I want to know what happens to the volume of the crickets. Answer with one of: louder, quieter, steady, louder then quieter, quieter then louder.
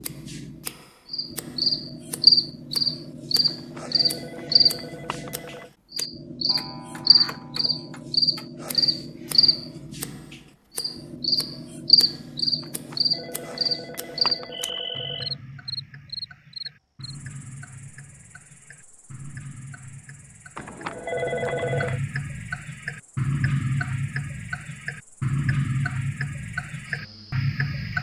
quieter.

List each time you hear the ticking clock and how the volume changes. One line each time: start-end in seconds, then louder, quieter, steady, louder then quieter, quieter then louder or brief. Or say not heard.
0.0-27.9 louder.